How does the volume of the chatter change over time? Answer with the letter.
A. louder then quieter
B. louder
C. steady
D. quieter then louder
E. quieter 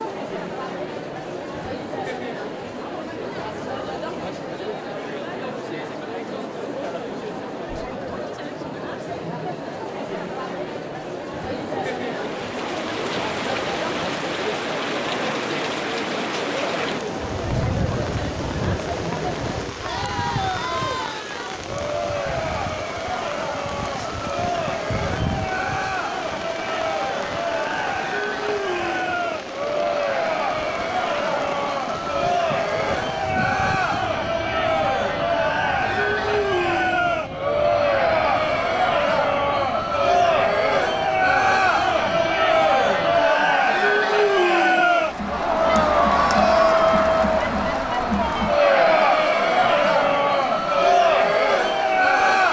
B.